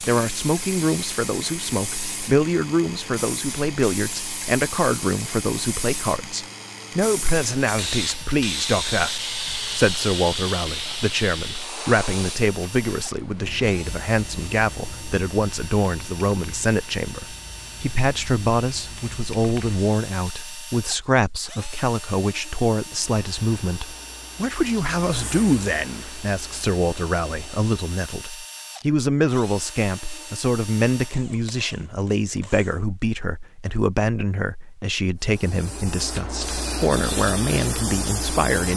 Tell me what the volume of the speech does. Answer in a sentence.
The loudness of the speech stays about the same.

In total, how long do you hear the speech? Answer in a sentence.
The speech can be heard for 39 seconds in total.